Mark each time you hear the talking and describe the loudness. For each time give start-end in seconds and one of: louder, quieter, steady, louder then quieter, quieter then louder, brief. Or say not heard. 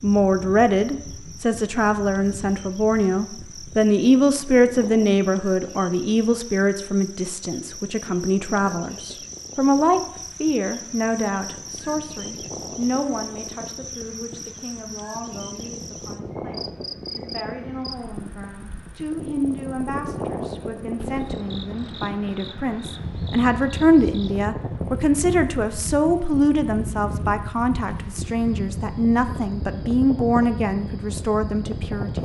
0.0-32.2 quieter then louder.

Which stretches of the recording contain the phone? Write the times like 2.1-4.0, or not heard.
not heard.